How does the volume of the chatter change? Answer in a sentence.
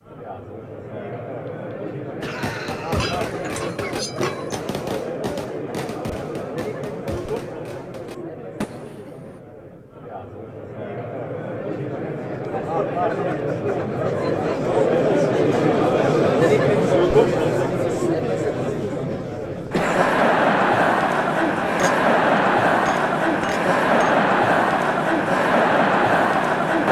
The loudness of the chatter goes up.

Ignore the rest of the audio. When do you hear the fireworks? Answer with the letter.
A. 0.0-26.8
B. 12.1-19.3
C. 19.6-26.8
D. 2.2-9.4
D.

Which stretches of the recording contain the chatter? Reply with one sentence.
The chatter can be heard from 0.0 to 26.8 s.